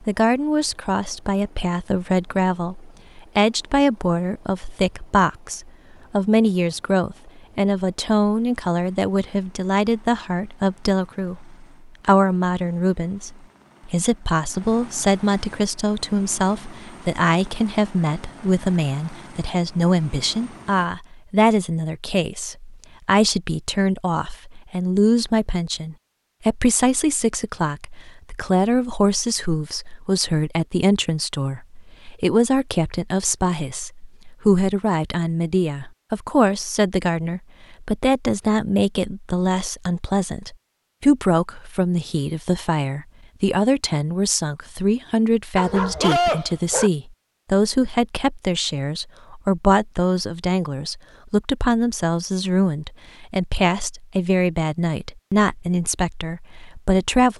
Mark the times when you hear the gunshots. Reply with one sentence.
You can't hear the gunshots here.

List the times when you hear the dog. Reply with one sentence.
The dog can be heard from 45.5 to 46.9 s.